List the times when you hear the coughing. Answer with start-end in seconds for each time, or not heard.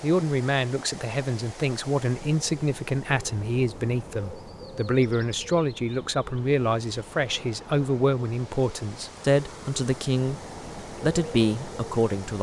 not heard.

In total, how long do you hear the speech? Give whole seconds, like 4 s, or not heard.
12 s.